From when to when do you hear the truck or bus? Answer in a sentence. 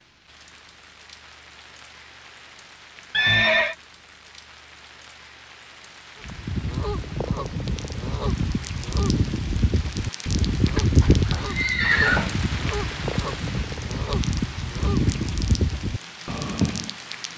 The truck or bus can't be heard in this clip.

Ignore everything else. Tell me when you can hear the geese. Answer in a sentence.
You can hear the geese from 6.2 to 16.9 s.